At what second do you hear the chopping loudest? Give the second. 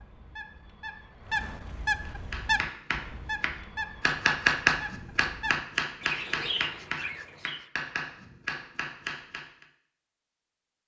5 s.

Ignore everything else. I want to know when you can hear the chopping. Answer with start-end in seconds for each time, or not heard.
2.0-9.7.